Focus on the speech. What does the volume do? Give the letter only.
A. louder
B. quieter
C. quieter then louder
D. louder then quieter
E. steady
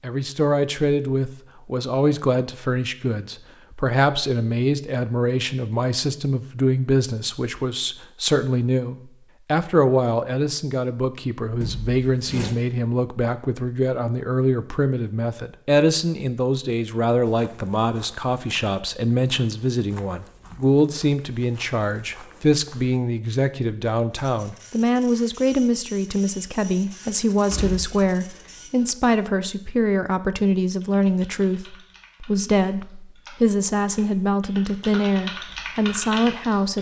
E.